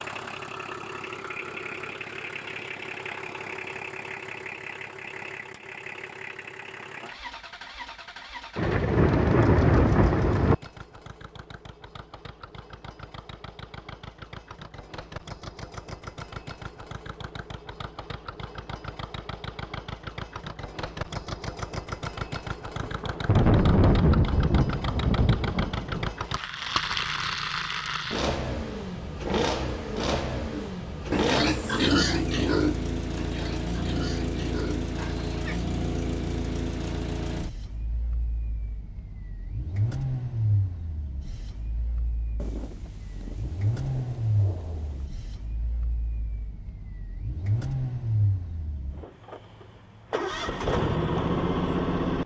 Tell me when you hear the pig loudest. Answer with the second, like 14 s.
32 s.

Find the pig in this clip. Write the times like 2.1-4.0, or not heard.
30.5-35.6.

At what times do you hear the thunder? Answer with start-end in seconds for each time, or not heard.
8.6-10.6, 22.8-26.1, 42.4-45.0.